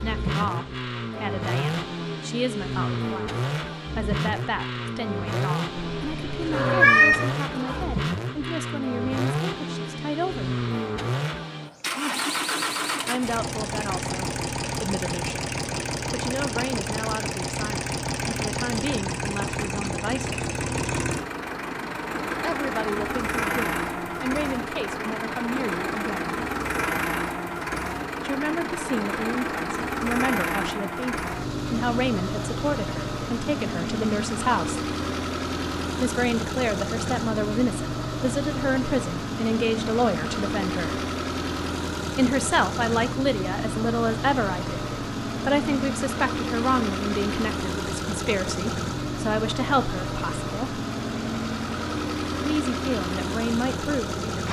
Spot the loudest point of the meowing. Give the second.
7 s.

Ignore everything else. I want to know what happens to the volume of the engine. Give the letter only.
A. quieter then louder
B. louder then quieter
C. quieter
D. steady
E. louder
D.